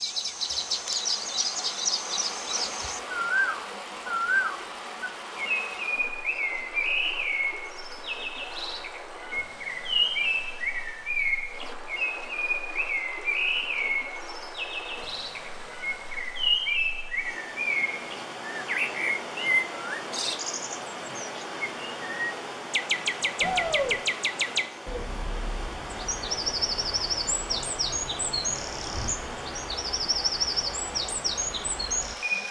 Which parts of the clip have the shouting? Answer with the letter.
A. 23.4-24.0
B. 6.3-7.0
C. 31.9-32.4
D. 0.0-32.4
A.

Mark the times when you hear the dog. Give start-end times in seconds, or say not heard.
not heard.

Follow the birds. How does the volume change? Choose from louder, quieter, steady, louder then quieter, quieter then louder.
steady.